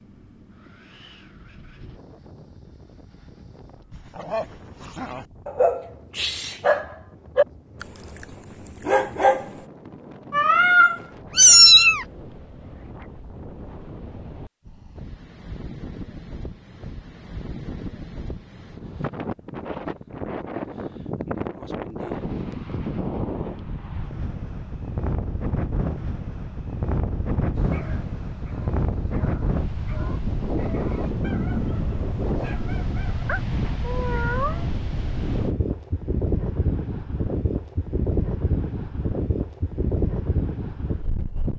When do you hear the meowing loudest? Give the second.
12 s.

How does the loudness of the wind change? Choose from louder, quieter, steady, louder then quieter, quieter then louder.
louder.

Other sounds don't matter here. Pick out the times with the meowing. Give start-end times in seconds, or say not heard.
10.3-12.1, 33.2-34.6.